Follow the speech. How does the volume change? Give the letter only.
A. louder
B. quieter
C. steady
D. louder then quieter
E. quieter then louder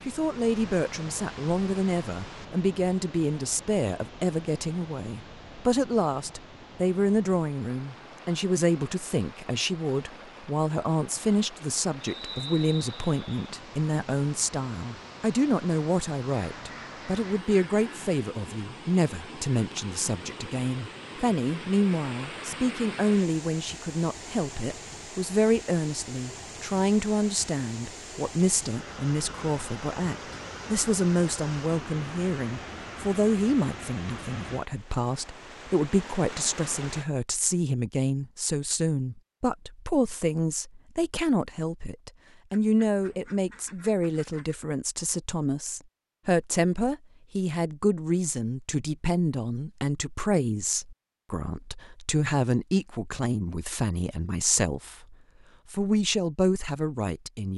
C.